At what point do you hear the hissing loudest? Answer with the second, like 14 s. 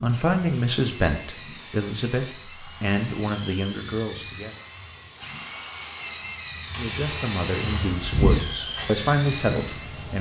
8 s.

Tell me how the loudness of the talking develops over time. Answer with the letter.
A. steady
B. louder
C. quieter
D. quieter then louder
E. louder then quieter
D.